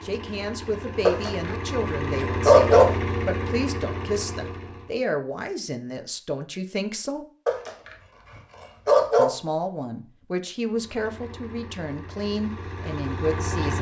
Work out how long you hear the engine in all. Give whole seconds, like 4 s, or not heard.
8 s.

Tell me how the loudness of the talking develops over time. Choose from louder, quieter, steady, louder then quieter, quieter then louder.
steady.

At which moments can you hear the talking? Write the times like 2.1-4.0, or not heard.
0.0-7.2, 9.2-13.7.